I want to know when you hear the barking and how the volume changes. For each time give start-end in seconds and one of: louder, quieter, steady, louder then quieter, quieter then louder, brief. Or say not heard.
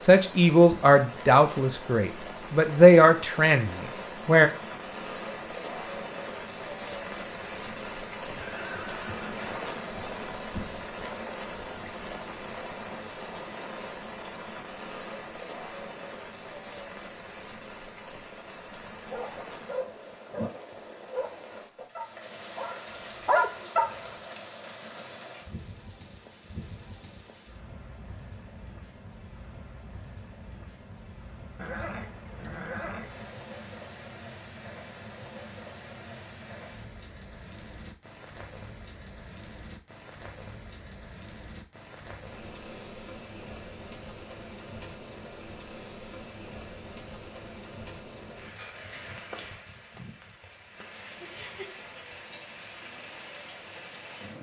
18.8-23.9 louder.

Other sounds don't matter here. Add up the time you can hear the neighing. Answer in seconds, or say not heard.
3 s.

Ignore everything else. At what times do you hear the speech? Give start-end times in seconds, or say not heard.
0.0-4.5.